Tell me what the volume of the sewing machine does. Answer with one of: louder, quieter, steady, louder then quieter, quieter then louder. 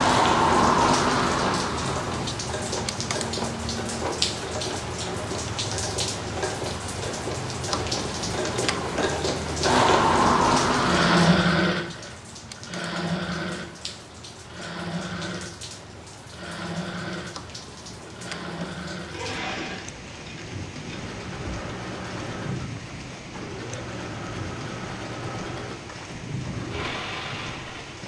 louder then quieter.